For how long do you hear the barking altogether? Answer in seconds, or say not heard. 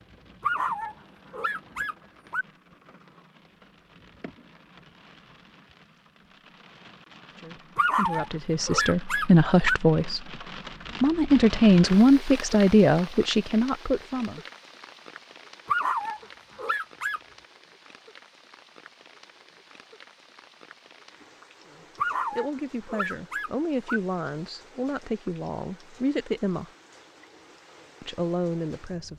8 s.